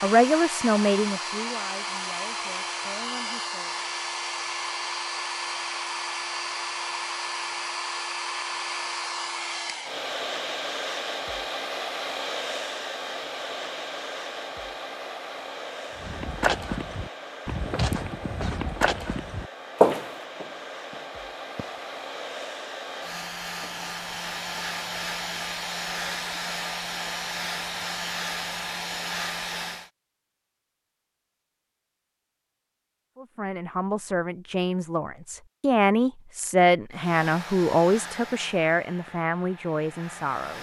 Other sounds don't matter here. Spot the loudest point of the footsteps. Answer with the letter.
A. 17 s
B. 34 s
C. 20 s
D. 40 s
C.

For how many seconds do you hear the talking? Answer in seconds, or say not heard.
11 s.